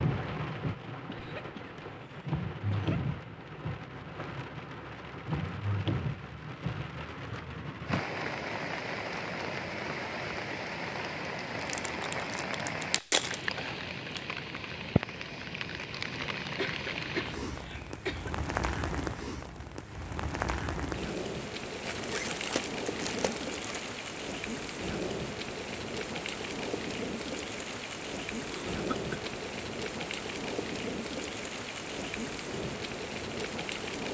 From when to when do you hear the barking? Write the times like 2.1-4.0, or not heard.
not heard.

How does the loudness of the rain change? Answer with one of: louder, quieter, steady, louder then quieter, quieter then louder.
steady.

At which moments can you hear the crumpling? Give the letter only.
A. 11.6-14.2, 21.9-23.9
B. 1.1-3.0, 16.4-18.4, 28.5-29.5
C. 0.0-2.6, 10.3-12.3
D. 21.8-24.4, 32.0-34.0
A.